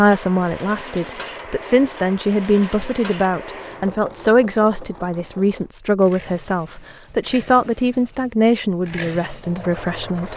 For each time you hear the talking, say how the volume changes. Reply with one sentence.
You can hear the talking from 0.0 to 10.3 s, at a steady volume.